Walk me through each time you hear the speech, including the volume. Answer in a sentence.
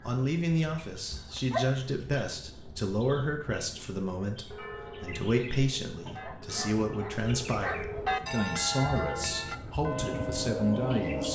The speech can be heard from 0.0 to 11.2 s, at a steady volume.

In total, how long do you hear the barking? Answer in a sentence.
You can hear the barking for 3 seconds altogether.